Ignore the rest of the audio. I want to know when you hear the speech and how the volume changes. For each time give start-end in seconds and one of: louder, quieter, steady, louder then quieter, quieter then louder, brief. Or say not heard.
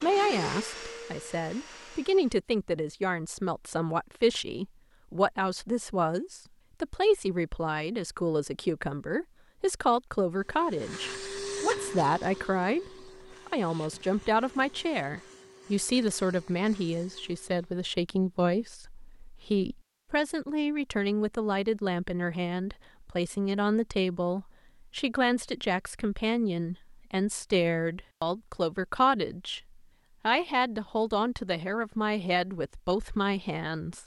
0.0-34.0 steady.